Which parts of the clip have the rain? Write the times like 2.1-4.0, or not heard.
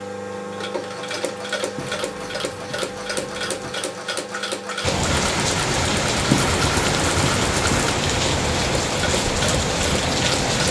4.8-10.6.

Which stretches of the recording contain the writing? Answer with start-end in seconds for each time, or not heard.
1.8-3.8, 6.3-7.9.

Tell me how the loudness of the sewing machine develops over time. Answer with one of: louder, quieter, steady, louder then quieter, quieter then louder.
steady.